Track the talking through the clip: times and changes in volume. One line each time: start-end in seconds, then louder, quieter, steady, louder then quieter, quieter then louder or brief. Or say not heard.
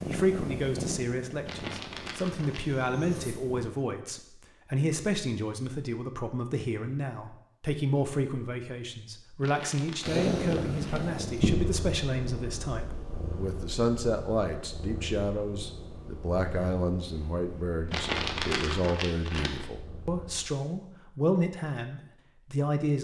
0.1-23.0 steady.